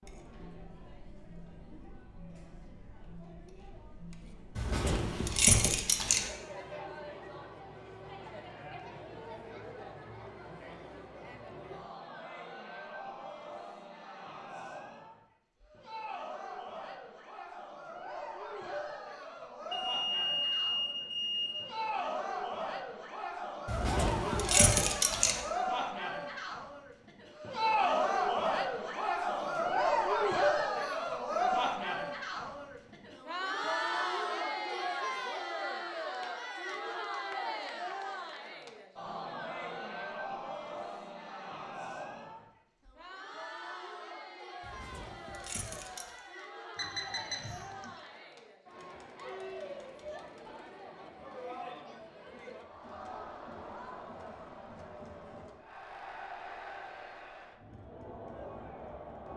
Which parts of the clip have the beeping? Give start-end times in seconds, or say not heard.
19.7-21.6, 46.8-47.9.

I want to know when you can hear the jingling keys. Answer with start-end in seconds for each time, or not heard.
4.5-6.2, 23.7-25.4, 44.6-46.0.